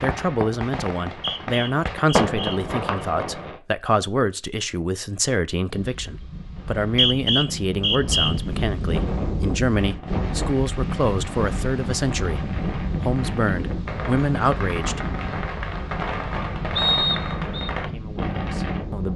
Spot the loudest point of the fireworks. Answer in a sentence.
The loudest moment of the fireworks is at 2 seconds.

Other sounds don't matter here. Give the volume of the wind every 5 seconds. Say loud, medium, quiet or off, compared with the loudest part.
off, loud, loud, loud.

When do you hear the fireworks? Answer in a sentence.
The fireworks can be heard from 0.0 to 3.6 s and from 8.9 to 18.9 s.